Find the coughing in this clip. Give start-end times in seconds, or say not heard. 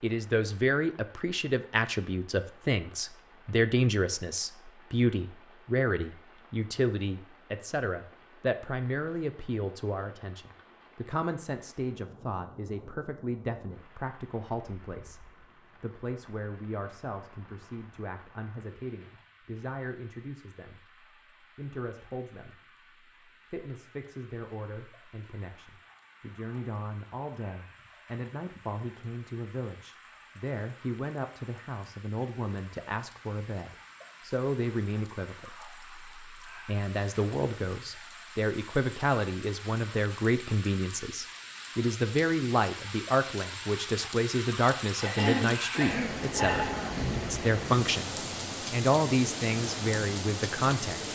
45.0-47.0.